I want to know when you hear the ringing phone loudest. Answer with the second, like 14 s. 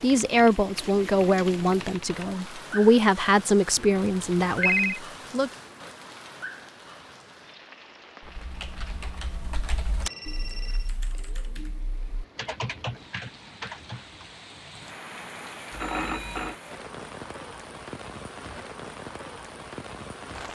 5 s.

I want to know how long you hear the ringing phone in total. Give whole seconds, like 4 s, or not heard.
3 s.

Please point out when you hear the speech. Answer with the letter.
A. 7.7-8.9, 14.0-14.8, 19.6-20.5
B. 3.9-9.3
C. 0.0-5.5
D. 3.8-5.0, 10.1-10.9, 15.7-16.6
C.